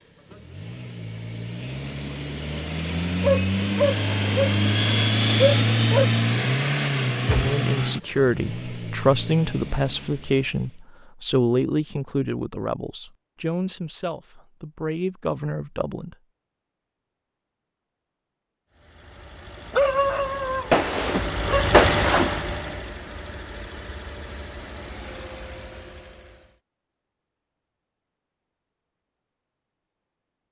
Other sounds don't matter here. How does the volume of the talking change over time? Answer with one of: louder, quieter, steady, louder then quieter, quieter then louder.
quieter.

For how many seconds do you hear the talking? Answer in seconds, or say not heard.
9 s.